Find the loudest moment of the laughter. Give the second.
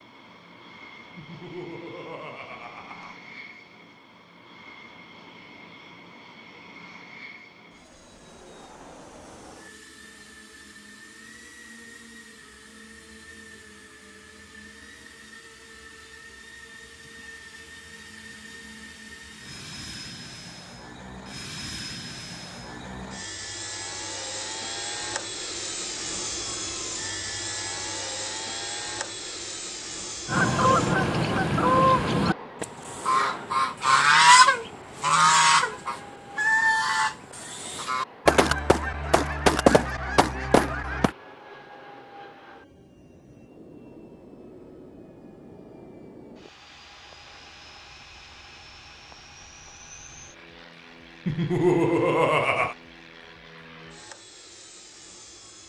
52 s.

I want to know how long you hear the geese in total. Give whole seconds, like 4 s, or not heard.
11 s.